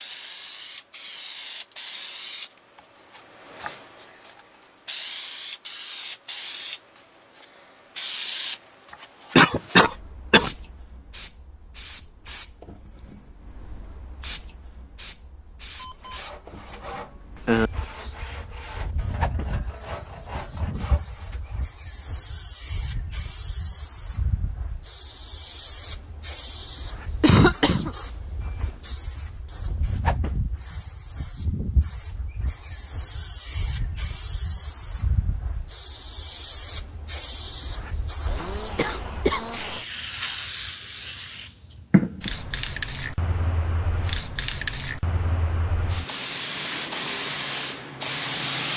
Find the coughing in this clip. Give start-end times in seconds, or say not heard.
9.3-10.5, 27.2-27.9, 38.2-39.9.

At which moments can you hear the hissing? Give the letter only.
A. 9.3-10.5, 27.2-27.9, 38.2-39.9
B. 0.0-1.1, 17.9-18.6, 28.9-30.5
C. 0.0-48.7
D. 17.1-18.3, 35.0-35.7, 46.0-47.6
C.